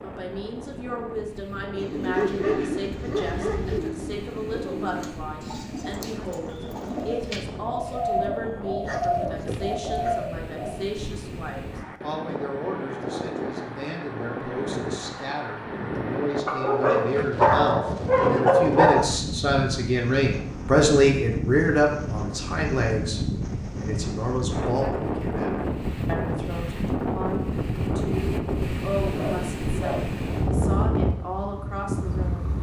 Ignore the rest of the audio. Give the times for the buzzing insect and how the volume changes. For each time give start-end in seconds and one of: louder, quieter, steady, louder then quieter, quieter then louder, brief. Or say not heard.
not heard.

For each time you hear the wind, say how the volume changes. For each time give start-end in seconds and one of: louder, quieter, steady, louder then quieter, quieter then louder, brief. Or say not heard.
0.0-32.5 louder.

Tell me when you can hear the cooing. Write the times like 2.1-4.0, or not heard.
1.7-10.8.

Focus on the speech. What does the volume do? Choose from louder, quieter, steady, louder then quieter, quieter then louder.
louder then quieter.